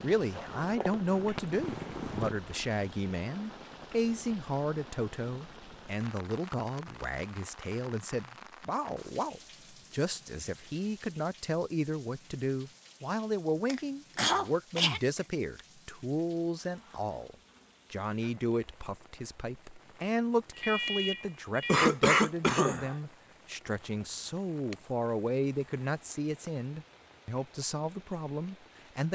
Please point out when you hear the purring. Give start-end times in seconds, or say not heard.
0.1-2.4.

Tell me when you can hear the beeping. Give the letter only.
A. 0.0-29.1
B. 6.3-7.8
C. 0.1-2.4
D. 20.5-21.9
D.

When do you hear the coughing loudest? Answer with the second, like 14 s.
22 s.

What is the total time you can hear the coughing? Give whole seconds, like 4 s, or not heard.
3 s.